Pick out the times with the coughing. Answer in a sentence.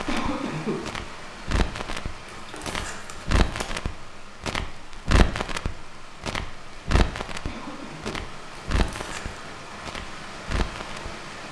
The coughing can be heard from 0.1 to 0.8 s and from 7.5 to 8.2 s.